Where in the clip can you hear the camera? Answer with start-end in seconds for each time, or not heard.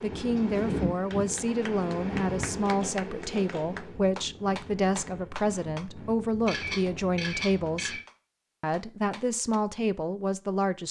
2.6-3.6, 6.5-8.0.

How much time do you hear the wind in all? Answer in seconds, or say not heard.
7 s.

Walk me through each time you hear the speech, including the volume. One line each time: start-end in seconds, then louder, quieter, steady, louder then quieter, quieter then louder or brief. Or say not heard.
0.0-8.0 steady
8.6-10.8 brief.